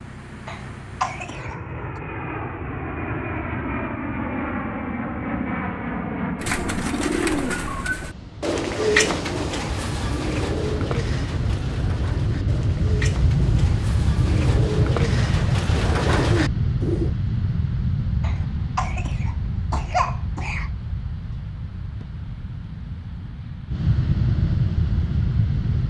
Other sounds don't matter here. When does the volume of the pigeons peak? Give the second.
9 s.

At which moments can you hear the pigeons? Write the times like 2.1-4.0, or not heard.
6.4-17.1.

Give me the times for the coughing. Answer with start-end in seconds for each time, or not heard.
0.5-2.0, 18.2-20.7.